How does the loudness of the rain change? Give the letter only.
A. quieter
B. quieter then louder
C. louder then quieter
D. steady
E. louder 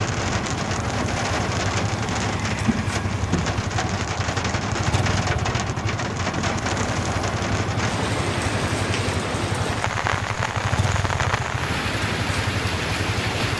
D.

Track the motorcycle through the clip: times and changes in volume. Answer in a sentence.
You can hear the motorcycle from 0.0 to 13.5 s, at a steady volume.